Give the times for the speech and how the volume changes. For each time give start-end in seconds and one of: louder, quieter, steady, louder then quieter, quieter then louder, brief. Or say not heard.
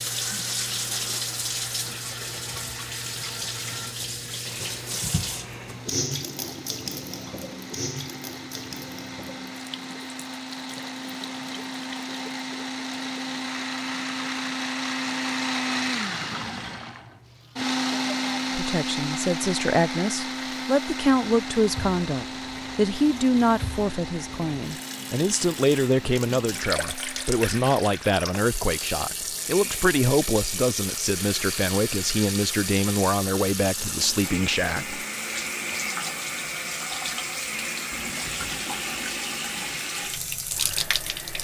18.6-35.0 steady.